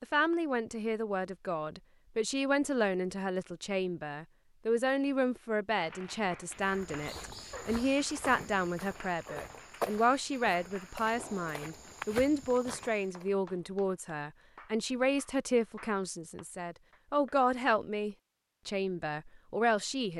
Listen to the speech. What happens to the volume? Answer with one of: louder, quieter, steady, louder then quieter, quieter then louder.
steady.